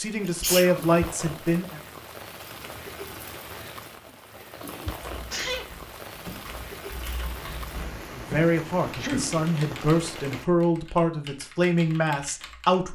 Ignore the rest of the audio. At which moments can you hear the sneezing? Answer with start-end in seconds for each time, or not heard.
0.2-0.9, 4.8-5.7, 8.9-9.3.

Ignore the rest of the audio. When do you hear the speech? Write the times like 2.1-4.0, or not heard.
0.0-1.8, 8.2-12.9.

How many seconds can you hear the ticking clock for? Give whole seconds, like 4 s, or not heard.
not heard.